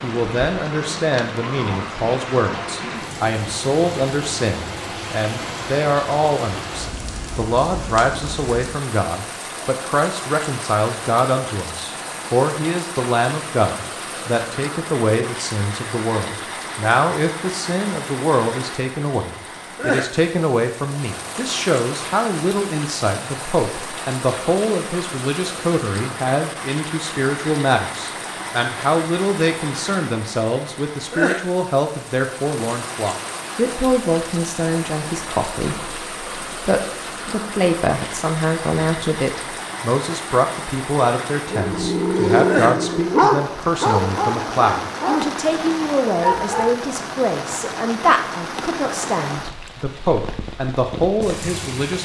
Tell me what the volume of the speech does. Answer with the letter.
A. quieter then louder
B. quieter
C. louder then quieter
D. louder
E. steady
E.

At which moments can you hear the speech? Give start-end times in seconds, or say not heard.
0.0-51.9.